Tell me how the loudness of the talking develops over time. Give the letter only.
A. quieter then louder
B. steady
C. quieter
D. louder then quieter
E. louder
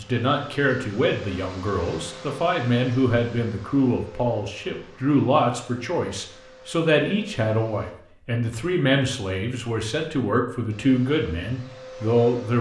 B.